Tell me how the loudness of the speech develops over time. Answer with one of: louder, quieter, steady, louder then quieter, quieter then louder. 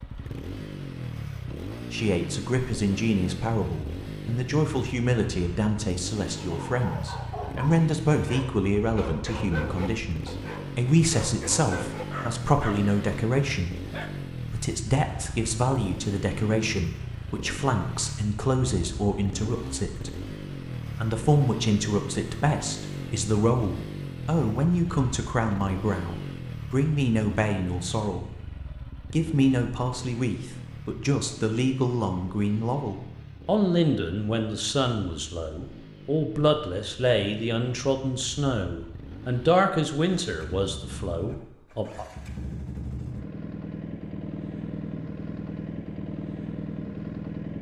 steady.